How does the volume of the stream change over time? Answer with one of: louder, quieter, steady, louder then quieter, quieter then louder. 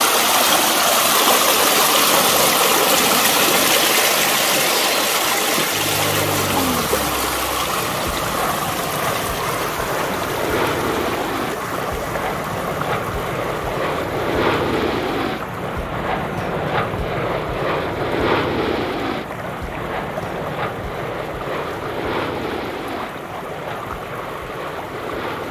quieter.